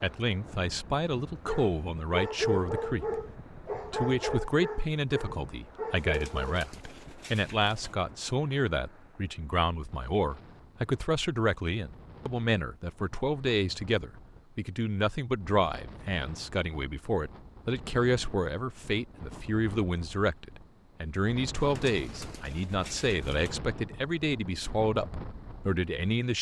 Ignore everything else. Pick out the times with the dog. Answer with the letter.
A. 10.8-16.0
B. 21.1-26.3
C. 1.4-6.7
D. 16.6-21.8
C.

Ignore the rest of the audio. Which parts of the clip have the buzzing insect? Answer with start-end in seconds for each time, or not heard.
not heard.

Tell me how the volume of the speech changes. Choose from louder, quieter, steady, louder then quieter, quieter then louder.
steady.